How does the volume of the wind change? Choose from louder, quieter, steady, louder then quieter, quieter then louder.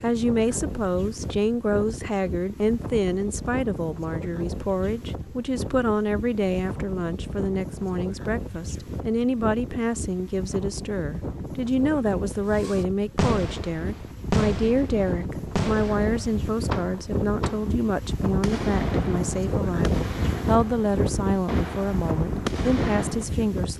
louder.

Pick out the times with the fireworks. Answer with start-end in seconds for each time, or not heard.
12.5-23.2.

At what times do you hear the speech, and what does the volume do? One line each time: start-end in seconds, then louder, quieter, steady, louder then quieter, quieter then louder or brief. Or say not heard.
0.0-23.7 steady.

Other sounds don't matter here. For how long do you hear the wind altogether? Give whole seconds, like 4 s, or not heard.
24 s.